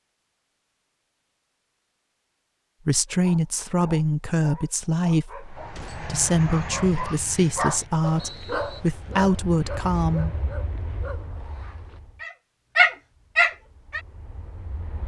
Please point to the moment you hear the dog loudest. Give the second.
13 s.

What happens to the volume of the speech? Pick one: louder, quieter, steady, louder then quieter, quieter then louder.
steady.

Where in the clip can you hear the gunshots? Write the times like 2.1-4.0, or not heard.
5.8-6.2.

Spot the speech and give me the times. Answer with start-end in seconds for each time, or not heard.
2.9-10.3.